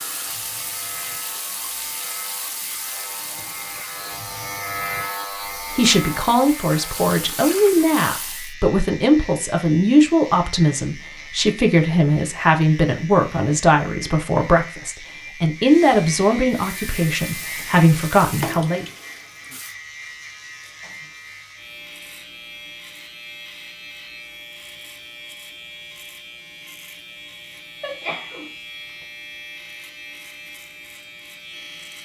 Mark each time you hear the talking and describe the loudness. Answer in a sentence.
You can hear the talking from 5.7 to 18.9 s, at a steady volume.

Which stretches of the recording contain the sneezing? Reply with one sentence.
You can hear the sneezing from 27.8 to 28.9 s.